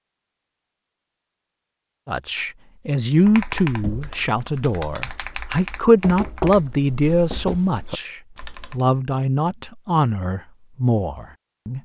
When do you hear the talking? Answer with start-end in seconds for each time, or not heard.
2.0-11.8.